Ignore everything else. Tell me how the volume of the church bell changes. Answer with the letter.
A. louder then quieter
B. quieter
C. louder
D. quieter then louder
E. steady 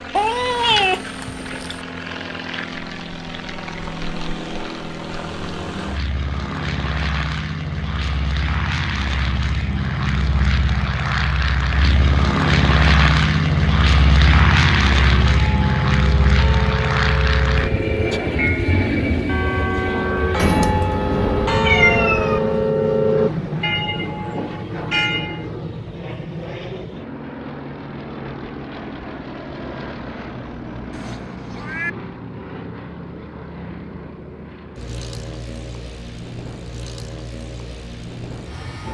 C.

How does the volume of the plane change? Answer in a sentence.
The loudness of the plane goes up, then down.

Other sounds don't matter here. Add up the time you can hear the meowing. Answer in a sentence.
The meowing can be heard for 5 seconds in total.